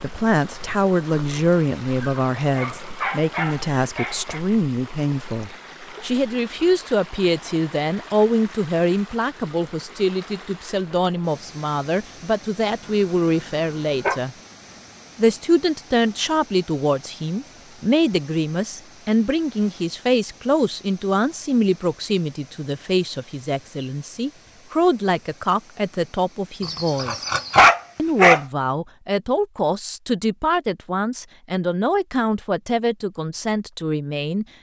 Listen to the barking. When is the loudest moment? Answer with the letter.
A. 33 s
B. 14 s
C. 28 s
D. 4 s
C.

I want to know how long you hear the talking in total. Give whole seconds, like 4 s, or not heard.
33 s.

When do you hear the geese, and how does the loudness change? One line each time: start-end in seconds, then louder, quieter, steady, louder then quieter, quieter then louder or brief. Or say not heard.
not heard.